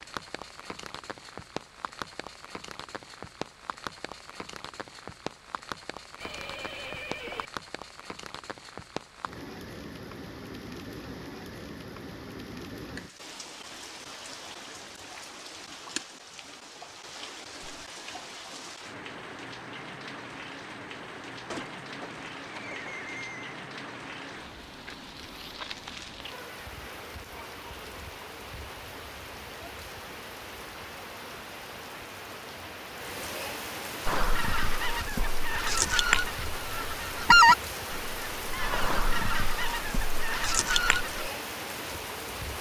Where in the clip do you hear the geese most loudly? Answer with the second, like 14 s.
37 s.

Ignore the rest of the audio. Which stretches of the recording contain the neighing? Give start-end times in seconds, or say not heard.
6.2-7.5, 21.4-23.4.